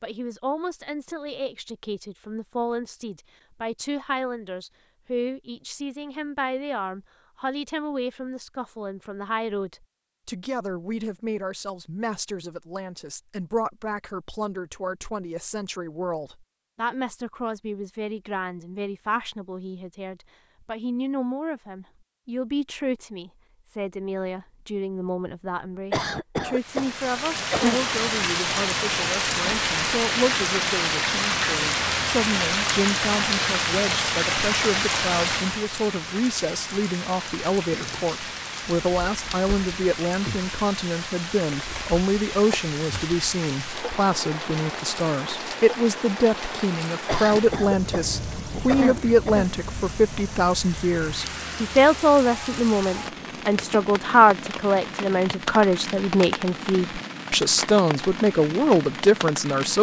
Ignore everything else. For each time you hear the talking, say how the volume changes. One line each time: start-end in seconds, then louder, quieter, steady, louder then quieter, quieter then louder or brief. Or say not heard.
0.0-59.7 louder.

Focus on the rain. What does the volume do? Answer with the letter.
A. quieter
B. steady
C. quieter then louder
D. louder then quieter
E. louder
A.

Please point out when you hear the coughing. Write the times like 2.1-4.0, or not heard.
25.9-27.9, 47.0-49.5.